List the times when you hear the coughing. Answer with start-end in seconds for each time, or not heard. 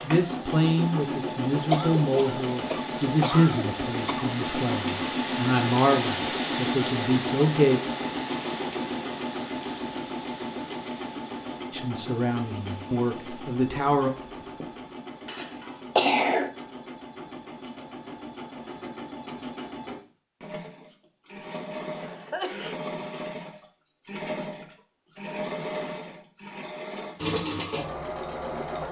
1.7-4.3, 15.2-16.5, 21.9-22.8.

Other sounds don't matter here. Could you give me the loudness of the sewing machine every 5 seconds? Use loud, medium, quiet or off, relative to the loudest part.
loud, loud, medium, medium, medium, loud.